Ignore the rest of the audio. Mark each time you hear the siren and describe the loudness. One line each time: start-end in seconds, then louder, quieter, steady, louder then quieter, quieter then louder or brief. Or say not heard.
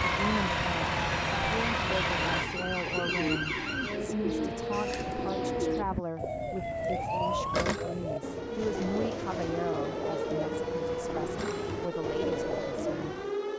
0.0-13.5 steady.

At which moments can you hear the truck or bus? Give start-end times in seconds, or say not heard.
0.0-2.5.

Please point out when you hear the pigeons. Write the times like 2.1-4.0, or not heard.
2.2-13.3.